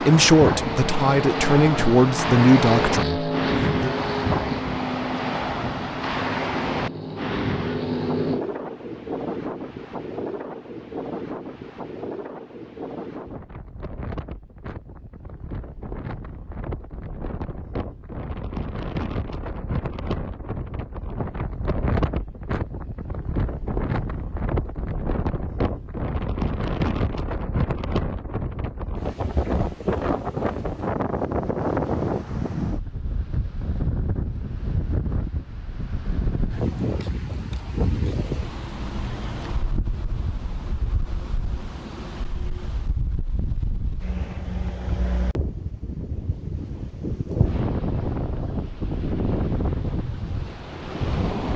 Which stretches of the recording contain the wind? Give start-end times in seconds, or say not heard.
0.0-51.5.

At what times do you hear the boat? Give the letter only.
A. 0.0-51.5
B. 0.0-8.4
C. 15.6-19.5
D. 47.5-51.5
B.